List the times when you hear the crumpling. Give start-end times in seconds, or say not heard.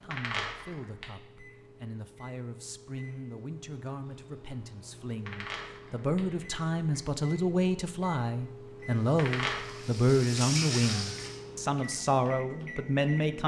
0.1-1.1, 5.2-7.0, 9.2-9.8.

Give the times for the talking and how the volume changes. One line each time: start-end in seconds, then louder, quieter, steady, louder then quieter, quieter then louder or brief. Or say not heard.
0.0-13.4 louder.